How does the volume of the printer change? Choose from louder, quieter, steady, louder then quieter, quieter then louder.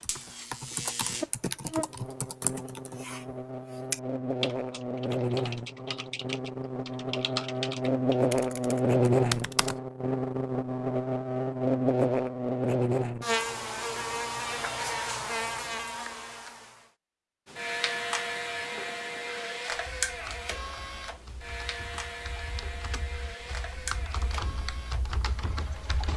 quieter.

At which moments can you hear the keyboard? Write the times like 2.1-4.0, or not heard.
0.0-9.8, 19.7-26.1.